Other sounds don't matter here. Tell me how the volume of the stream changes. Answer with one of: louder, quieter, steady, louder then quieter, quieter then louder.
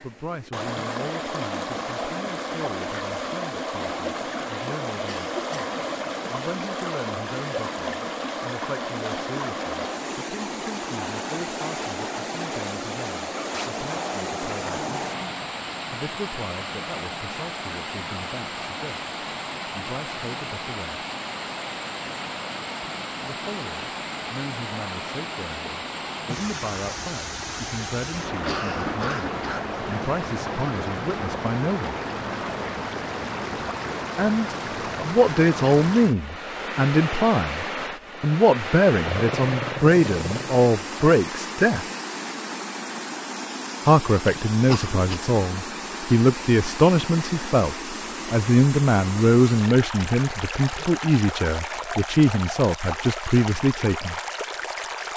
steady.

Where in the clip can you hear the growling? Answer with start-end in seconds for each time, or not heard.
13.5-15.4, 39.0-40.5.